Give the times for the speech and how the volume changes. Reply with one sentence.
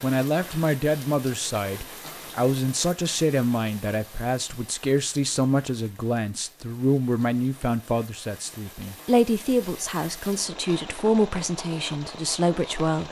The speech can be heard from 0.0 to 13.0 s, at a steady volume.